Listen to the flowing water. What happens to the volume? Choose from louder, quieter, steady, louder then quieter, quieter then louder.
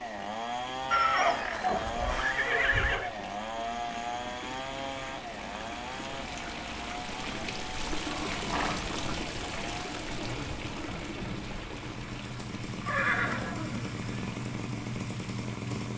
louder then quieter.